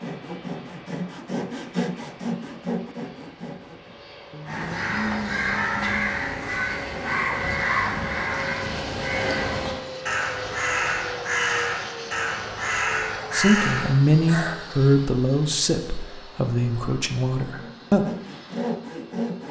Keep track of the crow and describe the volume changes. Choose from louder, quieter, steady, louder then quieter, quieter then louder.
steady.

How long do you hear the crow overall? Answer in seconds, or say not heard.
10 s.